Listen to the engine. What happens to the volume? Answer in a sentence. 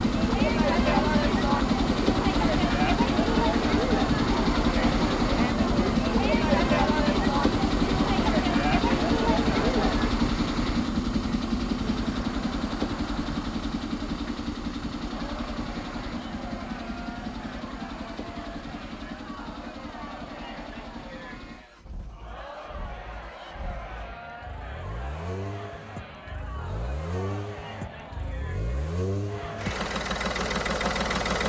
The volume of the engine goes down, then up.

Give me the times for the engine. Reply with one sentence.
You can hear the engine from 0.0 to 31.4 s.